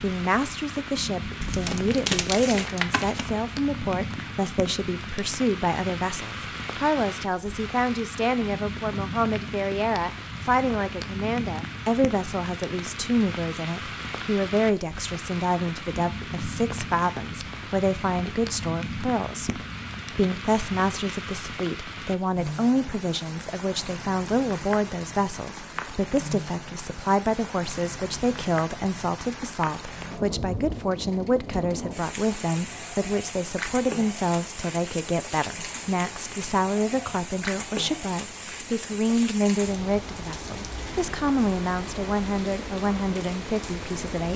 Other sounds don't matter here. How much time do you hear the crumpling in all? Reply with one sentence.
The crumpling can be heard for 2 seconds in total.